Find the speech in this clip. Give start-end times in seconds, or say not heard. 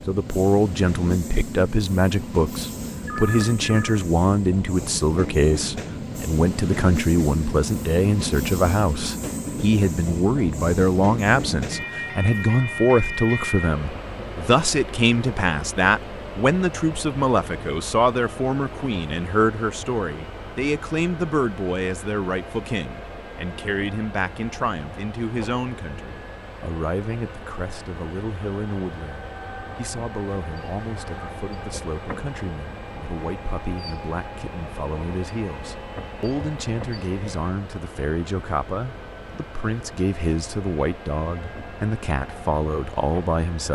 0.1-43.7.